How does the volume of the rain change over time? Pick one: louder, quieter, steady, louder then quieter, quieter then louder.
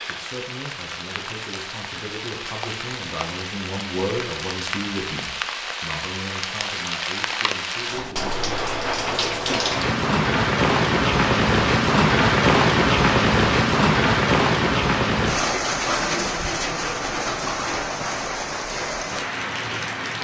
louder then quieter.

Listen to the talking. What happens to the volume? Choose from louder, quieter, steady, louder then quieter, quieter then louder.
louder then quieter.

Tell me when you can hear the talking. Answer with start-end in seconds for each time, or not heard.
0.1-8.4.